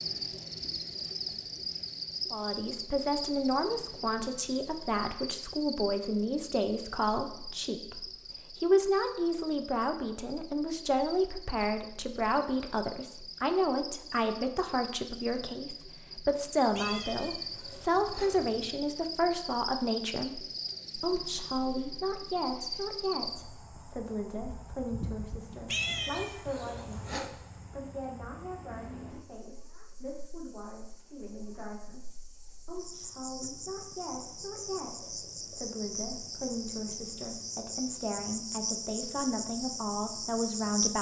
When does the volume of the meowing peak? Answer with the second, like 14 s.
26 s.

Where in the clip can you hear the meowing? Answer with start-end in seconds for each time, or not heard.
16.7-18.8, 25.6-27.3.